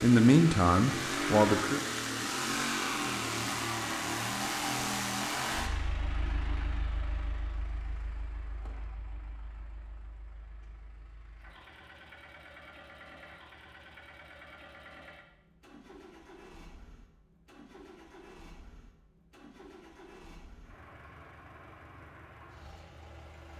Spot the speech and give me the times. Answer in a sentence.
The speech can be heard from 0.0 to 1.8 s.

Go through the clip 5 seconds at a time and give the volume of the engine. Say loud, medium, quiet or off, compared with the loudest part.
loud, medium, quiet, quiet, quiet.